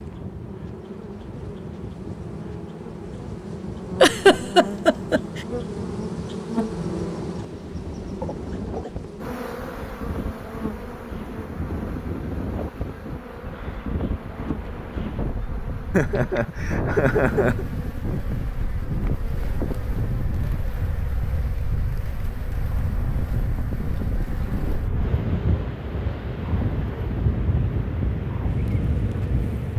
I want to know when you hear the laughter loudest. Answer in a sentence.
The volume of the laughter peaks at 4 seconds.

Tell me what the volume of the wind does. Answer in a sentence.
The volume of the wind goes up.